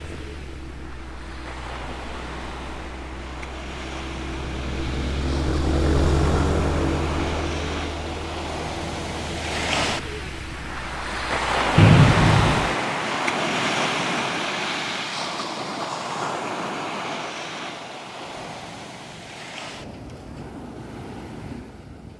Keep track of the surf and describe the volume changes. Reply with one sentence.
The volume of the surf goes up, then down.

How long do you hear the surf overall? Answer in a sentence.
You can hear the surf for 22 seconds altogether.